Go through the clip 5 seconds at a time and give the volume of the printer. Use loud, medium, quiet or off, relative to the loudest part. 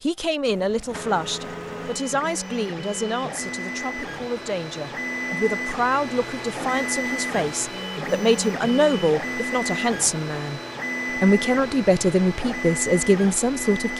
medium, loud, loud.